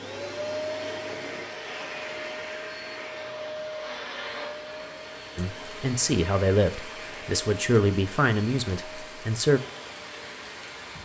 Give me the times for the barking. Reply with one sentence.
You can't hear the barking here.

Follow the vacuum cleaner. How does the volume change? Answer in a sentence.
The loudness of the vacuum cleaner goes down.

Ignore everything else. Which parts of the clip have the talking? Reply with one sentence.
The talking can be heard from 5.3 to 9.6 s.